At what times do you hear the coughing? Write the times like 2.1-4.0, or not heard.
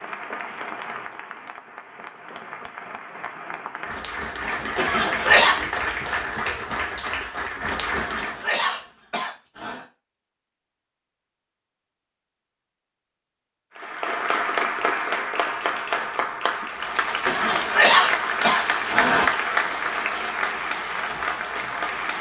4.8-5.6, 8.0-9.8, 17.2-19.2.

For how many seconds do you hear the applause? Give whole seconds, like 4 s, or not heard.
17 s.